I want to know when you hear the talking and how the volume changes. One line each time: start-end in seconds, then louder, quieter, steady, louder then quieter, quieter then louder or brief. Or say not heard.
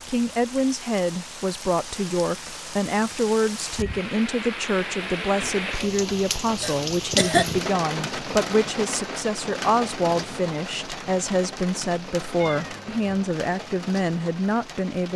0.1-15.1 steady.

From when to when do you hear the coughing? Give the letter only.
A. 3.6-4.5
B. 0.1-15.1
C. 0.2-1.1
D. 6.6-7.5
D.